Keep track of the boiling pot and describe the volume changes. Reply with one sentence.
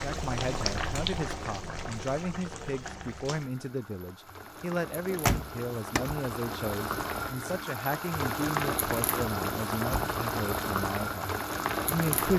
The loudness of the boiling pot goes down, then up.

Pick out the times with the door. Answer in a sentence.
You can hear the door from 5.0 to 6.1 s.